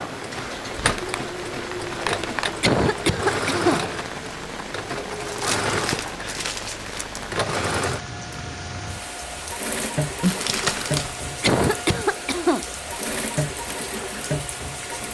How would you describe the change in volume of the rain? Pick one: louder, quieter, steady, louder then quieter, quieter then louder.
steady.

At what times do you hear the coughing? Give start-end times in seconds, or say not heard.
2.6-3.8, 11.4-12.7.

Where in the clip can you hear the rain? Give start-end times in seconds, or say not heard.
0.0-15.0.